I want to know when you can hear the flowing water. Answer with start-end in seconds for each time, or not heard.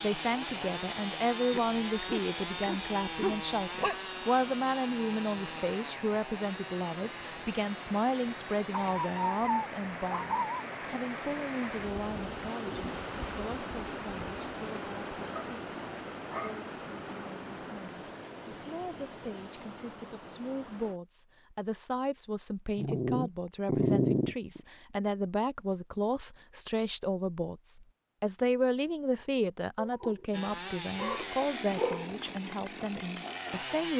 0.0-21.0.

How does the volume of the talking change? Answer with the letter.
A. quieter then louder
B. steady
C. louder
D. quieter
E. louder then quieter
A.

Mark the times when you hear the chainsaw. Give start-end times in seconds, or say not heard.
0.0-9.3, 30.3-33.9.